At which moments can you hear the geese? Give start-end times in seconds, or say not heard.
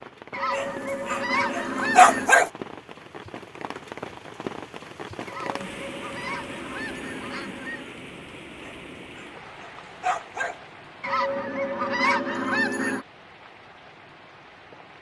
0.3-2.4, 5.2-8.0, 11.0-13.1.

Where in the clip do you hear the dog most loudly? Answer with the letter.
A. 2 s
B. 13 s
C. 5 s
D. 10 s
A.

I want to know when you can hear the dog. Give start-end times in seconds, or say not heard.
0.5-2.5, 8.6-10.6.